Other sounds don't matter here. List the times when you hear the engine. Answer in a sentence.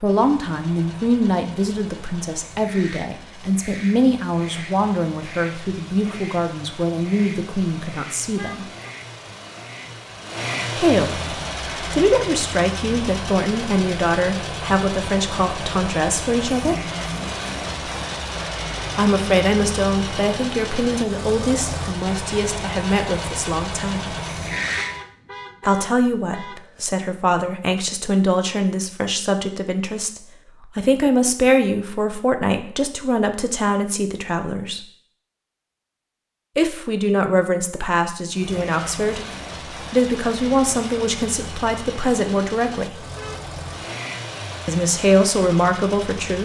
The engine can be heard from 0.0 to 25.1 s and from 38.2 to 46.4 s.